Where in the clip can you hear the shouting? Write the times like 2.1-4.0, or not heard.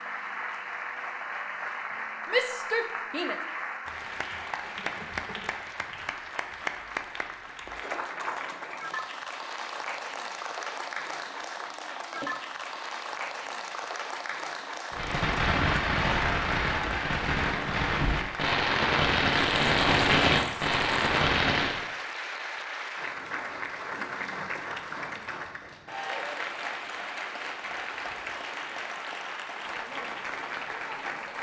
2.2-3.4.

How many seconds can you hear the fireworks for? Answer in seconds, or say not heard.
7 s.